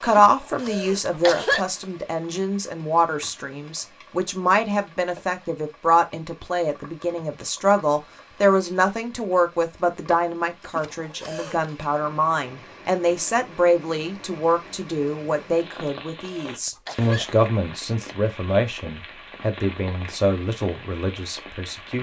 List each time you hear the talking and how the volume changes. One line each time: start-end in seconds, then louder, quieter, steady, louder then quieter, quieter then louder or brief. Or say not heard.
0.0-21.9 steady.